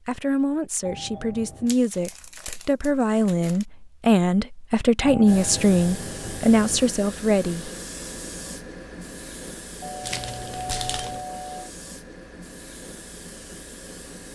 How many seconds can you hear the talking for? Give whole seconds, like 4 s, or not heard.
8 s.